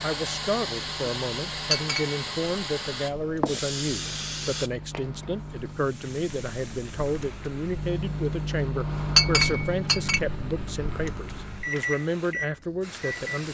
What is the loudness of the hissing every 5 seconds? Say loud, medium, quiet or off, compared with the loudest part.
loud, quiet, quiet.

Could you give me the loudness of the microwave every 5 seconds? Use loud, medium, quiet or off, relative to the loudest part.
medium, loud, loud.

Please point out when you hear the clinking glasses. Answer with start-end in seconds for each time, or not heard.
1.7-2.2, 9.2-10.2.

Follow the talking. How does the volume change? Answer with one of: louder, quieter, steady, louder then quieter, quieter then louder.
steady.